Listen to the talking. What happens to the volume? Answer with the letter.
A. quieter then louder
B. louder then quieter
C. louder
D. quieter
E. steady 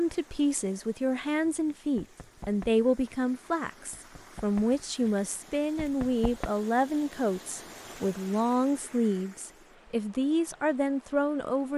E.